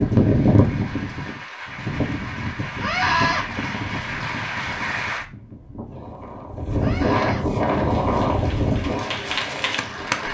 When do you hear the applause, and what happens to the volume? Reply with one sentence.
You can hear the applause from 0.0 to 5.2 s, getting louder; and briefly from 7.7 to 10.2 s.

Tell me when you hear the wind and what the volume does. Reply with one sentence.
You can hear the wind from 0.0 to 10.2 s, getting quieter then louder.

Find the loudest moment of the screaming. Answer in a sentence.
The loudest moment of the screaming is at 3 seconds.